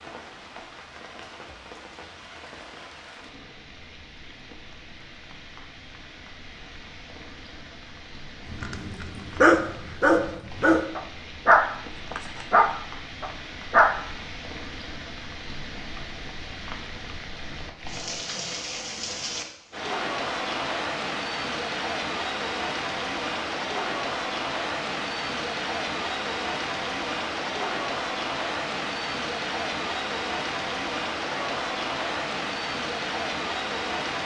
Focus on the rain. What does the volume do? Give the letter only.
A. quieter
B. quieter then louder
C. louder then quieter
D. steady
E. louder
E.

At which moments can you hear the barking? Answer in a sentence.
You can hear the barking from 8.5 to 14.0 s.